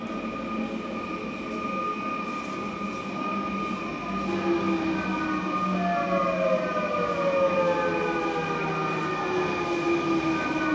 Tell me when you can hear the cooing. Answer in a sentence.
The cooing can't be heard in this clip.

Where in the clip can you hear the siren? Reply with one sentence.
The siren can be heard from 4.2 to 10.7 s.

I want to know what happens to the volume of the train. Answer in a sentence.
The loudness of the train stays about the same.